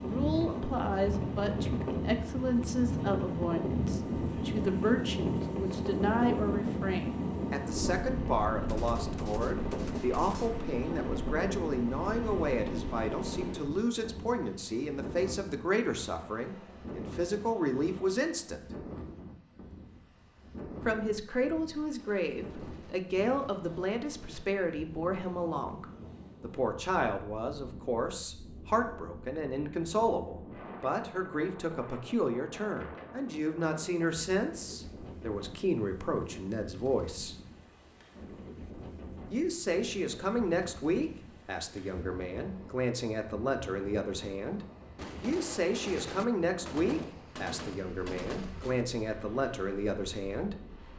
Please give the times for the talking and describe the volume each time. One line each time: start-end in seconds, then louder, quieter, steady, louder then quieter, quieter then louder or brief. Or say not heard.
0.0-18.6 steady
20.8-37.4 steady
39.3-50.5 steady.